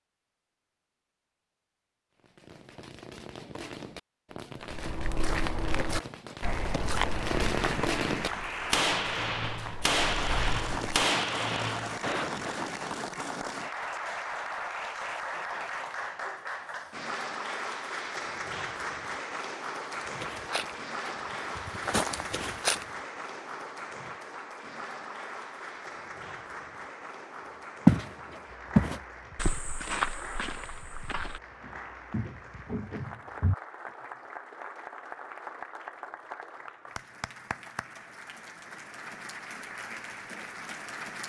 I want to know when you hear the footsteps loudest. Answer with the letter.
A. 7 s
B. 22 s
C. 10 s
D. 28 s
D.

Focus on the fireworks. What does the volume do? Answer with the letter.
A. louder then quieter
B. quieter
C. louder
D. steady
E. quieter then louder
C.